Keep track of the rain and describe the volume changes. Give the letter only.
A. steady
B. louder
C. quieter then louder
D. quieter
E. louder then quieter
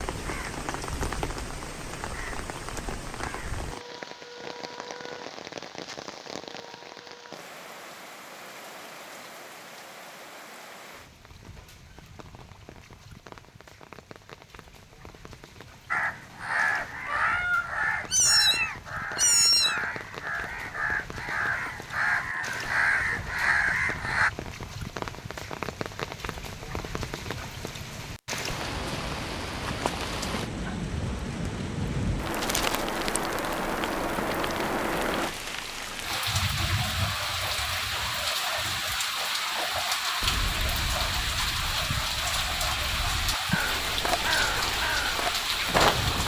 C.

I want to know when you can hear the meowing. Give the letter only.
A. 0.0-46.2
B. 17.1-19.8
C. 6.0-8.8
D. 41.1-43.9
B.